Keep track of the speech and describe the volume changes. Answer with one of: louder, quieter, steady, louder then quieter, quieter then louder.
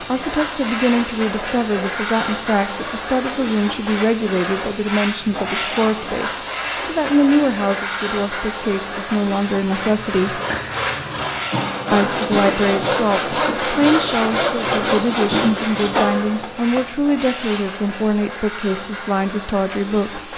steady.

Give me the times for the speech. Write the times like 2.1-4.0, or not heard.
0.1-10.4, 11.9-20.3.